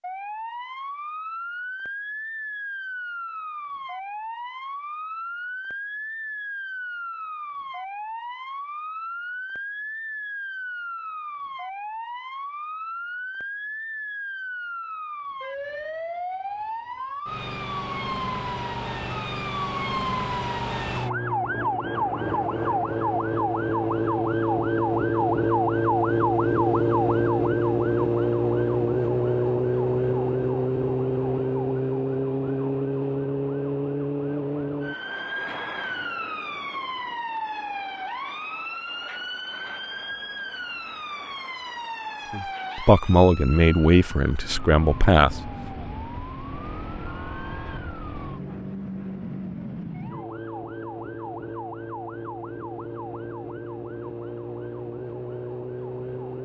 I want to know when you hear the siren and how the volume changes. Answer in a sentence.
You can hear the siren from 0.0 to 56.3 s, getting louder then quieter.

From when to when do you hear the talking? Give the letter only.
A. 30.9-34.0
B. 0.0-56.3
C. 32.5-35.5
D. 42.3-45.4
D.